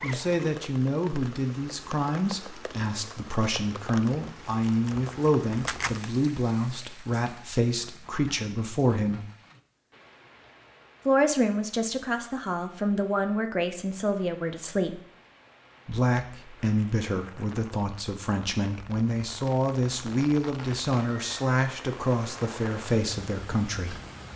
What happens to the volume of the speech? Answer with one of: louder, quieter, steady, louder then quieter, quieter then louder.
steady.